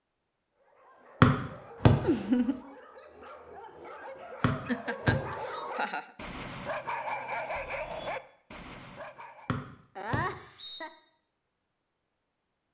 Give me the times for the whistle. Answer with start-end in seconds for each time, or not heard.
1.2-1.9, 4.4-5.6, 9.4-10.8.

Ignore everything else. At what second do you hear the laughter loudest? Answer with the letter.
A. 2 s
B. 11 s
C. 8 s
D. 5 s
A.